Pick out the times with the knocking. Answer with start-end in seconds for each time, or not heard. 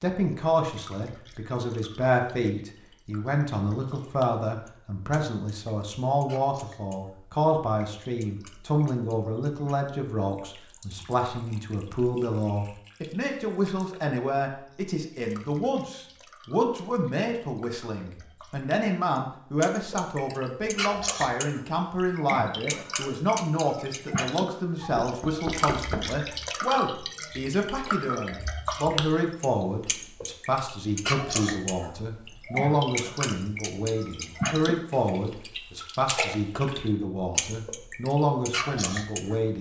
25.0-26.1.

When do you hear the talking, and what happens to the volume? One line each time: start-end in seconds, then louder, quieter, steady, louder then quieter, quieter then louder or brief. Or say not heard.
0.0-39.5 steady.